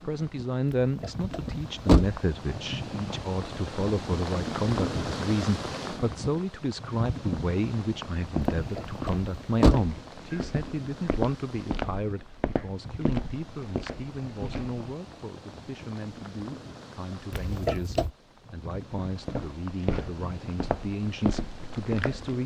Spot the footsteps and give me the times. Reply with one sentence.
You can hear the footsteps from 8.2 to 14.8 s and from 19.1 to 22.4 s.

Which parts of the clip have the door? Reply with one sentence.
You can hear the door from 0.7 to 2.2 s, from 8.6 to 9.8 s and from 17.3 to 18.1 s.